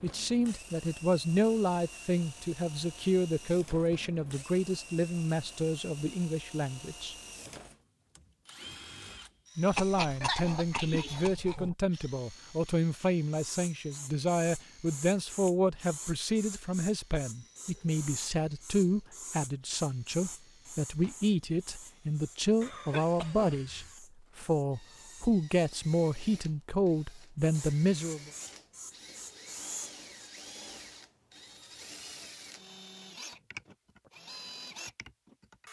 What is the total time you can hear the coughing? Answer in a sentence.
You can hear the coughing for 3 seconds altogether.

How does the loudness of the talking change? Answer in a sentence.
The volume of the talking stays about the same.